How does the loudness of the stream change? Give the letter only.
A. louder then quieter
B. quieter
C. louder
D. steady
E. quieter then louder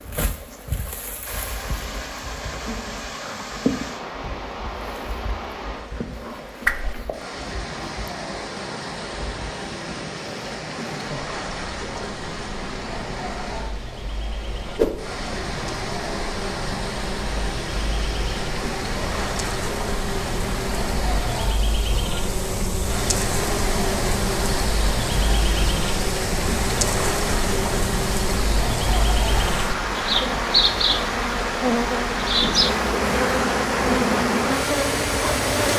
C.